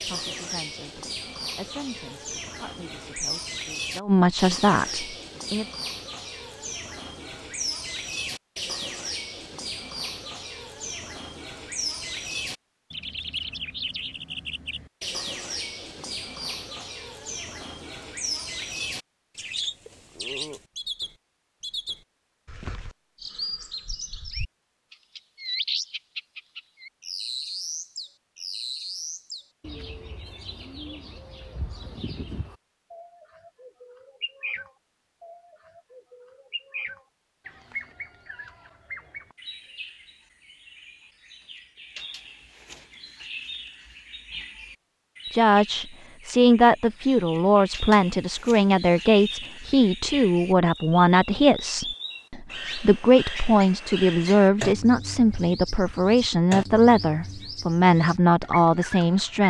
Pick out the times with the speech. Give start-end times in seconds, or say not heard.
0.0-5.7, 45.3-59.4.